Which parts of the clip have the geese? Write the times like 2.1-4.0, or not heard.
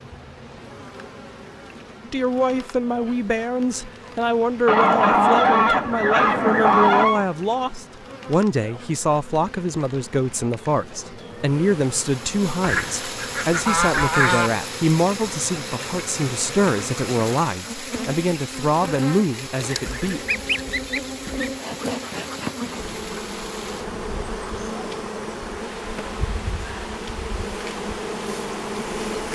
4.7-7.2, 12.6-14.5, 19.9-21.5.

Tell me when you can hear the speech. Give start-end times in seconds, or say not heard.
2.0-20.2.